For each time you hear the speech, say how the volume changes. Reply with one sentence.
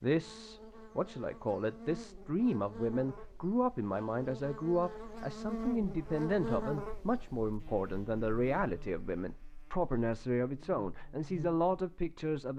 You can hear the speech from 0.0 to 12.5 s, at a steady volume.